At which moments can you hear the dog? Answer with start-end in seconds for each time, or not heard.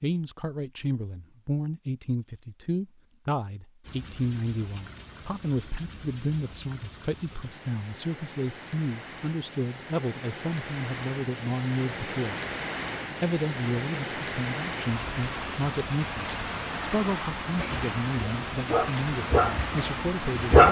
17.6-20.6.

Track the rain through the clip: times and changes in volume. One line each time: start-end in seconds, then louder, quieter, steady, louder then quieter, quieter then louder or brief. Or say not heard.
3.8-20.6 louder.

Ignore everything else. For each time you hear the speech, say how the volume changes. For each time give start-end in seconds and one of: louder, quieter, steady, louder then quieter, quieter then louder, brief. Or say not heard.
0.0-12.3 steady
13.2-20.6 steady.